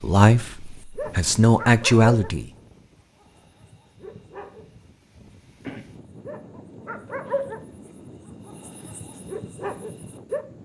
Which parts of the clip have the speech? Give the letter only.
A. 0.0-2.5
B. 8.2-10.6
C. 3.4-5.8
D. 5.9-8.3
A.